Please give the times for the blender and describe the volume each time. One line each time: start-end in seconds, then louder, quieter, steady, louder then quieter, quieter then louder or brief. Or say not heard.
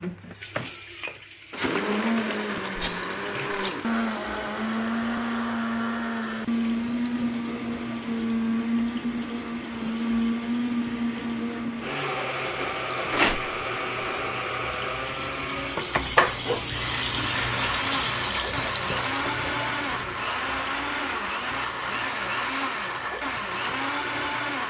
0.0-24.6 steady.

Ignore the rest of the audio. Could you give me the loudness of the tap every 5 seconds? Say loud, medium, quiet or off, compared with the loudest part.
quiet, quiet, quiet, loud, quiet.